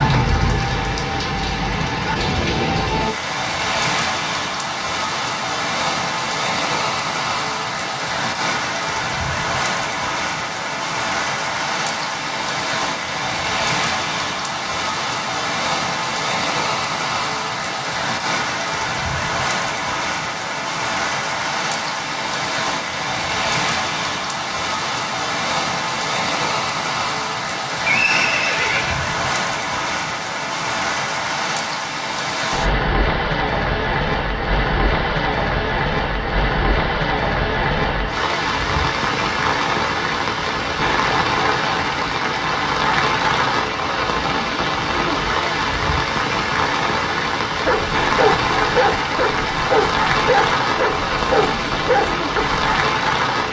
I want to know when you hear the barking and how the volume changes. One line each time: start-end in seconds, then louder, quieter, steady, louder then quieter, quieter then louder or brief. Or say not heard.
47.6-52.6 steady.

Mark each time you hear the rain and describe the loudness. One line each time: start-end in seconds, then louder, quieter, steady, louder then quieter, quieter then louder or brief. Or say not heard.
0.0-53.4 steady.